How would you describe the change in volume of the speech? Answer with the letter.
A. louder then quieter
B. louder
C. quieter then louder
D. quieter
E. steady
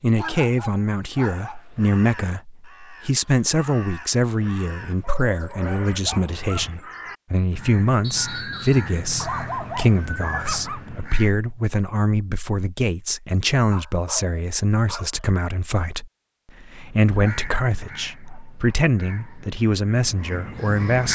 E.